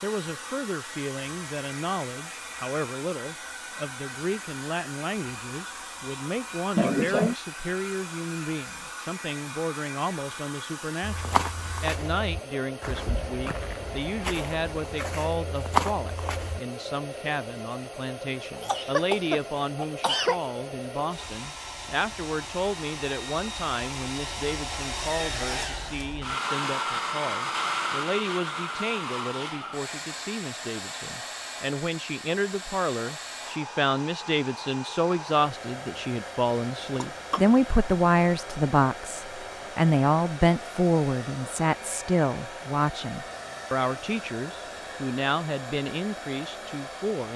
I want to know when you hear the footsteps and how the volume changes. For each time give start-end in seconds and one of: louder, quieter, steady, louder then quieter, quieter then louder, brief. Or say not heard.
11.0-16.6 louder.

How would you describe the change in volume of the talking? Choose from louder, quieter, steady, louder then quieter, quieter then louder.
louder.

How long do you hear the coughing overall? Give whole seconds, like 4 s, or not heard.
3 s.